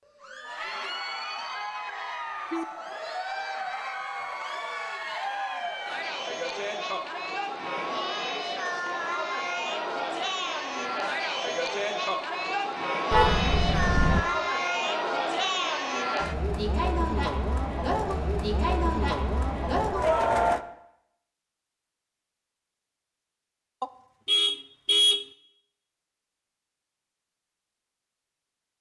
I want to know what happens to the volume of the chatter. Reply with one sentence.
The volume of the chatter goes up.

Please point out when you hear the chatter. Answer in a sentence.
You can hear the chatter from 0.1 to 20.6 s.